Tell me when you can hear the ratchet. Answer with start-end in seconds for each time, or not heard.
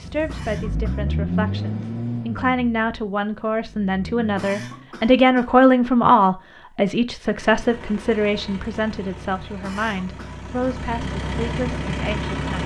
not heard.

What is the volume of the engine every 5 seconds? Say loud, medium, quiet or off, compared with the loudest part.
loud, medium, loud.